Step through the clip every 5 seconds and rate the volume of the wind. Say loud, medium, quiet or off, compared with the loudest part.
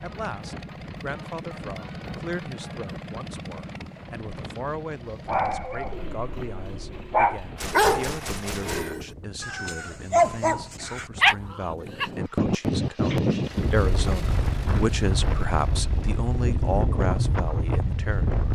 quiet, quiet, loud, loud.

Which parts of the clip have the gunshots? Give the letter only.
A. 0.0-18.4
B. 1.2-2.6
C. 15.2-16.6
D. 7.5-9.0
D.